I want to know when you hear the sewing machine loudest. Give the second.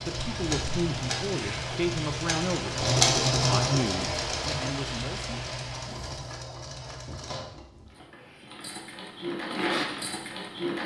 3 s.